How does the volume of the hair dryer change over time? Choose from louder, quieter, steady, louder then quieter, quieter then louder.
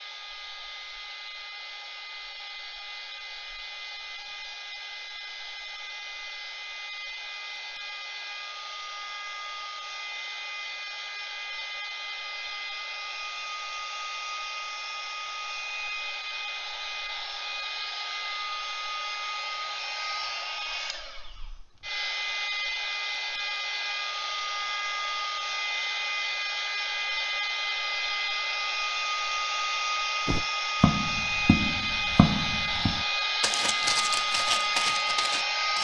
louder.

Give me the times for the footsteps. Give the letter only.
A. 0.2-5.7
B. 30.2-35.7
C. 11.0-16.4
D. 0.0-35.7
B.